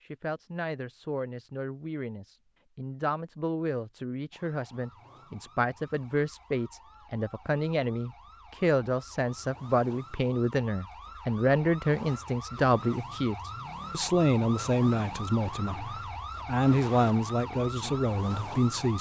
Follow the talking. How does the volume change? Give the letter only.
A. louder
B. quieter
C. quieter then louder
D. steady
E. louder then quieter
A.